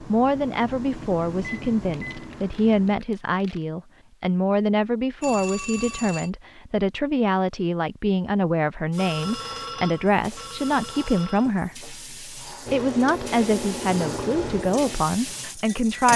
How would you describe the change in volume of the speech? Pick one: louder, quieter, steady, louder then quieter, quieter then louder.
steady.